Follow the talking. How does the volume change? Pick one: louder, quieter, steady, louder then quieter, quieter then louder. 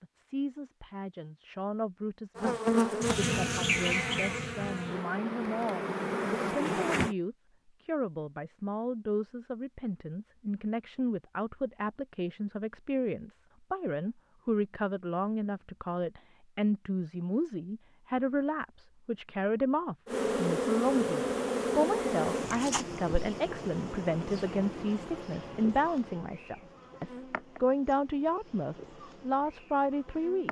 louder.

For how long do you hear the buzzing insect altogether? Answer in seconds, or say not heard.
15 s.